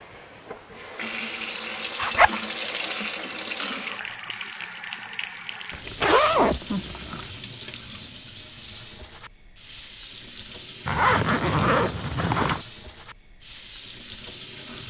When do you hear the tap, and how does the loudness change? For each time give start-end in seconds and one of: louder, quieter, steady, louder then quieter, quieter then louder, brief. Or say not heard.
0.0-14.8 quieter.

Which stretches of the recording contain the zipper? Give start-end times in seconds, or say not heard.
1.9-2.5, 5.7-7.2, 10.8-12.7.